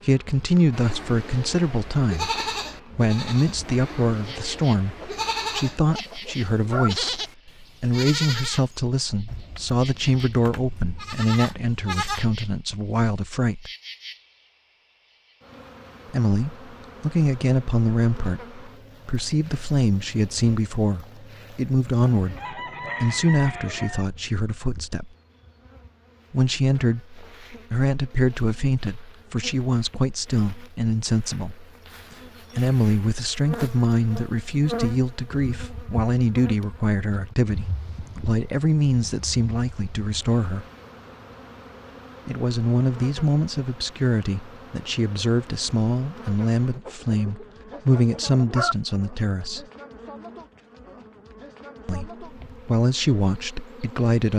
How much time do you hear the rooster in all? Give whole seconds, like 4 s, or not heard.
6 s.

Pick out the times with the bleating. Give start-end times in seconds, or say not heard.
0.7-12.3.